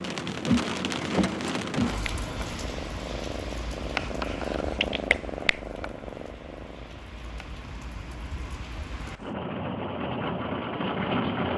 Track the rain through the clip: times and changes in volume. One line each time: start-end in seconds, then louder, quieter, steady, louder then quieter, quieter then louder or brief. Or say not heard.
0.0-11.5 quieter then louder.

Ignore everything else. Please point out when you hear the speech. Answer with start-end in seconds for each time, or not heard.
not heard.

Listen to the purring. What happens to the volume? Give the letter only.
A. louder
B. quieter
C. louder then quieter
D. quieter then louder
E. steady
C.